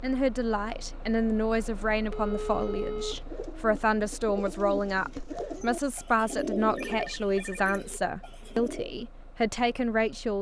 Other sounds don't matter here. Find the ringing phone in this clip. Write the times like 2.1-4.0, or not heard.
2.1-3.2, 6.9-7.8.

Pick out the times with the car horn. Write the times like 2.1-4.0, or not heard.
not heard.